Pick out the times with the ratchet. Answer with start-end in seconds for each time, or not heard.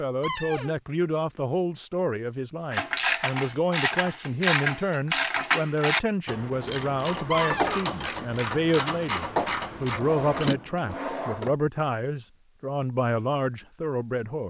2.7-10.6.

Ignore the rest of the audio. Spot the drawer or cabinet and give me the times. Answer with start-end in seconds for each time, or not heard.
0.2-0.8, 7.3-7.8, 9.9-11.6.